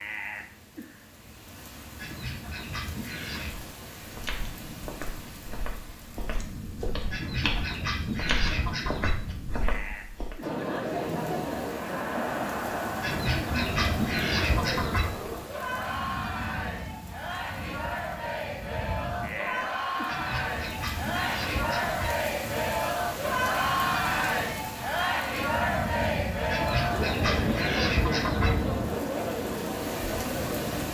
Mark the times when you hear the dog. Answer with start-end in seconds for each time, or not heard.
not heard.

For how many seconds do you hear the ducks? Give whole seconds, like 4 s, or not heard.
10 s.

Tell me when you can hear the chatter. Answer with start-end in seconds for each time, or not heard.
10.4-30.9.